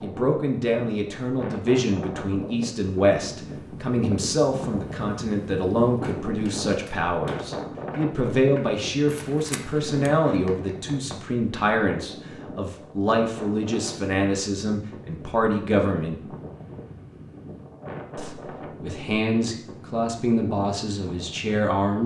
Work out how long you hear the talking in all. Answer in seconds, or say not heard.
20 s.